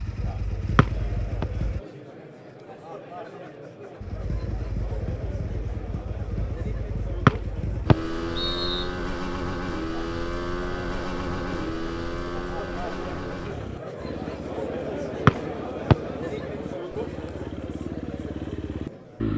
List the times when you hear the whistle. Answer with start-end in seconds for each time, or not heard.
0.8-1.4, 7.2-8.9, 15.2-15.9.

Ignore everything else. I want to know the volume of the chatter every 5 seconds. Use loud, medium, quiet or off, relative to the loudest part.
medium, medium, loud, loud.